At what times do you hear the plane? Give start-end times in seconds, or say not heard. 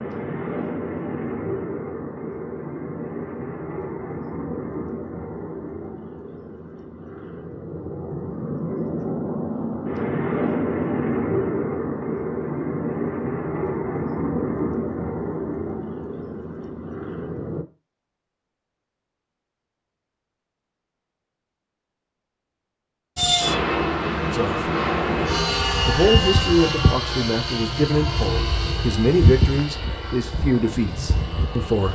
0.0-17.6, 23.1-31.9.